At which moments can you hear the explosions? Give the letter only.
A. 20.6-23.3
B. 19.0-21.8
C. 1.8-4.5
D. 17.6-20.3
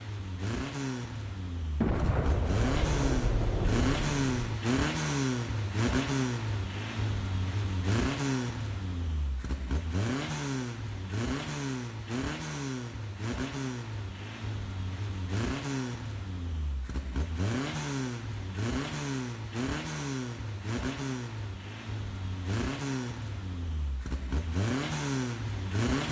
C.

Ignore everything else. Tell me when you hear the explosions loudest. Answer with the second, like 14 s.
2 s.